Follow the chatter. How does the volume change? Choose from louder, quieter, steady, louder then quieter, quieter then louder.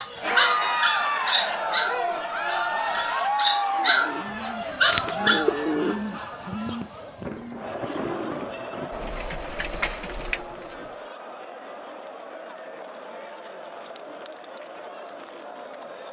quieter.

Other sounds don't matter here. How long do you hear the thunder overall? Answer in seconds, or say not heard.
4 s.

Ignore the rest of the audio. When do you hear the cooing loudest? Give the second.
6 s.